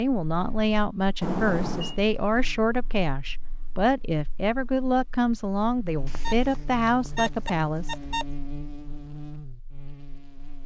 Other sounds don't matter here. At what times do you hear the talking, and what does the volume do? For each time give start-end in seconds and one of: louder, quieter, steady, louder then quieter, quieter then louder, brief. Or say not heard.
0.0-8.0 steady.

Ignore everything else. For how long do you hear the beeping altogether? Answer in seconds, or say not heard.
3 s.